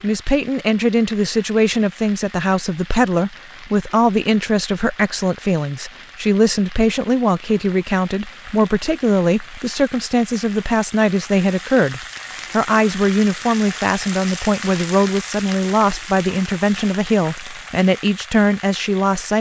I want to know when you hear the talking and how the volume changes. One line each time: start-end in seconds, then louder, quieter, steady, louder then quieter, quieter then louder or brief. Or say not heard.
0.0-19.3 steady.